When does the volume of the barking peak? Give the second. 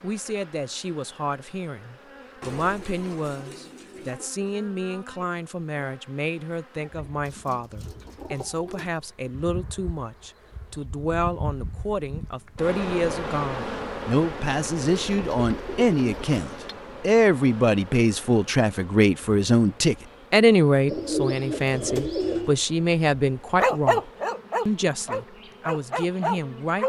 24 s.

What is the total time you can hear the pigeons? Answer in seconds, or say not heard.
7 s.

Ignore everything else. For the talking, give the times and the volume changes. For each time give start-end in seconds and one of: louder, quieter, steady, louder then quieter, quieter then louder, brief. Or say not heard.
0.0-24.0 louder
24.6-26.8 brief.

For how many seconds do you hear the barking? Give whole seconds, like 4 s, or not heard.
3 s.